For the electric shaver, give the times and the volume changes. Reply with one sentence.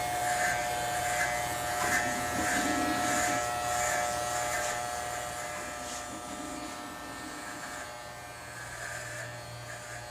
You can hear the electric shaver from 0.0 to 10.0 s, getting quieter.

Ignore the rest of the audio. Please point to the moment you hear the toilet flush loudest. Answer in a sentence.
The loudest moment of the toilet flush is at 3 seconds.